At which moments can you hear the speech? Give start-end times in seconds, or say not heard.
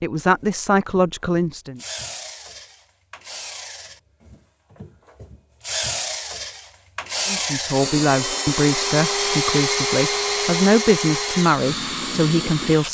0.0-1.8, 7.2-12.8.